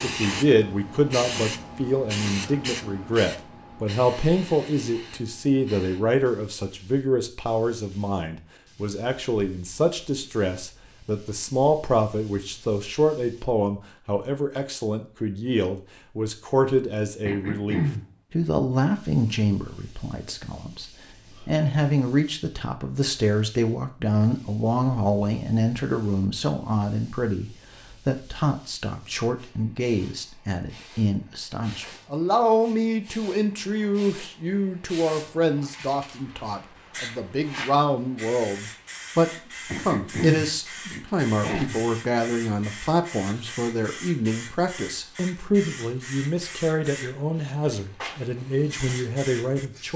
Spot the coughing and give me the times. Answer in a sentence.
The coughing can be heard from 17.2 to 18.1 s and from 39.6 to 41.8 s.